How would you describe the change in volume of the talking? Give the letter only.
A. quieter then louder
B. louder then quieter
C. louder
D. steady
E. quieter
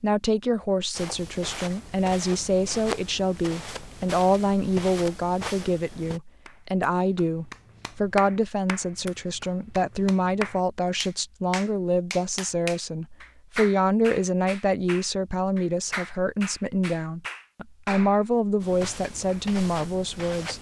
D.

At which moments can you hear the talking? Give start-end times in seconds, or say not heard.
0.0-20.5.